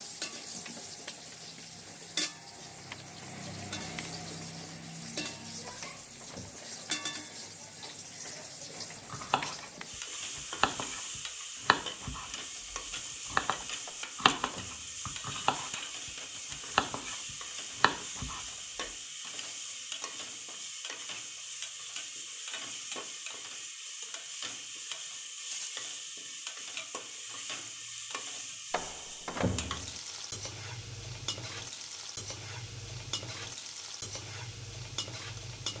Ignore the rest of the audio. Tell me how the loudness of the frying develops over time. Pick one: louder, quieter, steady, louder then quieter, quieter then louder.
steady.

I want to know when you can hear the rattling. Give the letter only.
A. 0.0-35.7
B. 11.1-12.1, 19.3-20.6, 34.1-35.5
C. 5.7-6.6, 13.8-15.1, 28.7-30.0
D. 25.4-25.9
D.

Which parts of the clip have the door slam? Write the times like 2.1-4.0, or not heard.
5.7-6.6, 13.8-15.1, 28.7-30.0.